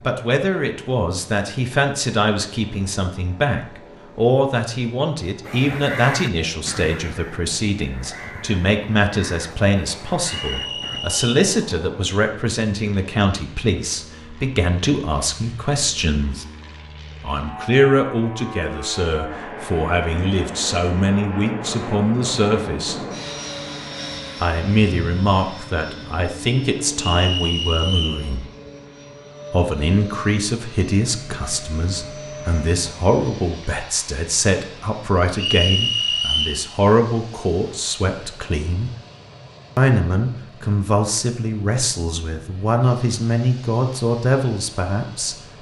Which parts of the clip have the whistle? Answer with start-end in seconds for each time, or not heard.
10.2-11.2, 26.9-28.2, 35.4-36.6.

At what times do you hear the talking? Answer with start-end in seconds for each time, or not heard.
0.0-16.4, 17.2-23.1, 24.4-28.4, 29.5-38.9, 39.8-45.4.